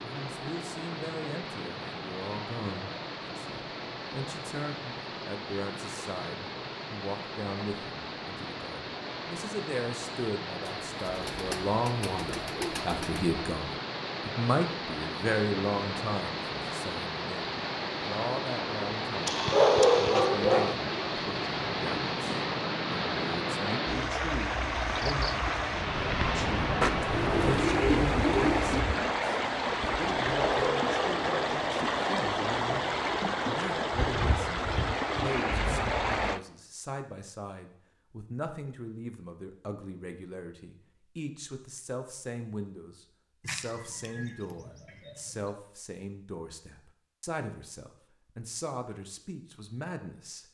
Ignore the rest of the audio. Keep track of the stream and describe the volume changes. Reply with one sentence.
The volume of the stream goes up.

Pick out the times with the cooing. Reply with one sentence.
The cooing can be heard from 10.7 to 13.2 s, from 26.8 to 28.8 s and from 43.4 to 45.5 s.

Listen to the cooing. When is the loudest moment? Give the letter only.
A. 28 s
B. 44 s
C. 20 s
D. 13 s
A.